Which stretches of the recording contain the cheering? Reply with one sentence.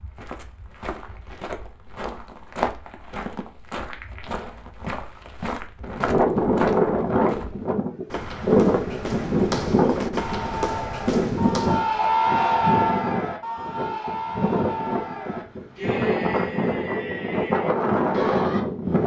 You can hear the cheering from 10.2 to 18.6 s.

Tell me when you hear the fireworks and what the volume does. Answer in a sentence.
The fireworks can't be heard in this clip.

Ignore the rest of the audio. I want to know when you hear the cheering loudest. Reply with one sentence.
The loudest moment of the cheering is at 12 seconds.